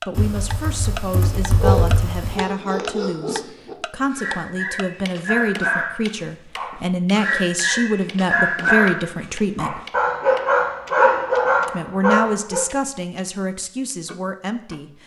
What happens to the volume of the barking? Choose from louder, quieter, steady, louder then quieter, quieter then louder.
louder.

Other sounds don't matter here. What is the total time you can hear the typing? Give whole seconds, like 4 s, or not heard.
2 s.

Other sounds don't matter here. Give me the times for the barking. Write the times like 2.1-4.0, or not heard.
1.6-12.7.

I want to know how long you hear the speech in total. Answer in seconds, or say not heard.
13 s.